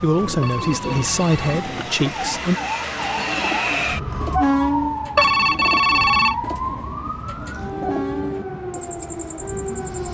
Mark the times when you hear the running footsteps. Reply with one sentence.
You can't hear the running footsteps here.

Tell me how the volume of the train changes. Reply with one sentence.
The loudness of the train goes up, then down.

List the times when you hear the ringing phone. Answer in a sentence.
You can hear the ringing phone from 0.4 to 1.9 s and from 5.2 to 6.3 s.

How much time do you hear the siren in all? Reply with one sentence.
You can hear the siren for 10 seconds altogether.